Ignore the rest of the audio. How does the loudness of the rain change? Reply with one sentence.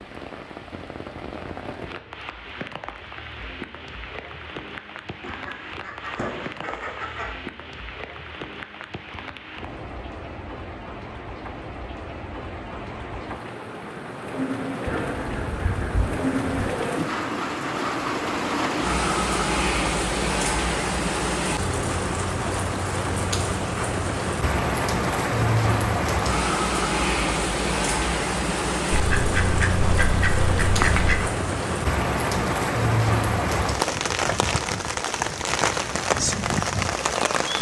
The loudness of the rain goes up.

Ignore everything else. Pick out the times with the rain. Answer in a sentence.
The rain can be heard from 0.0 to 37.5 s.